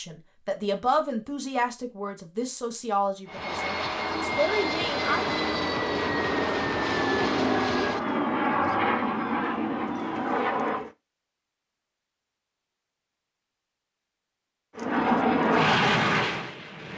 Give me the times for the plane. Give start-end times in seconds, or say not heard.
3.2-10.9, 14.8-16.9.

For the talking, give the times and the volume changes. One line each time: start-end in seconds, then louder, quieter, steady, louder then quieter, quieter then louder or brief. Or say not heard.
0.0-5.3 quieter then louder.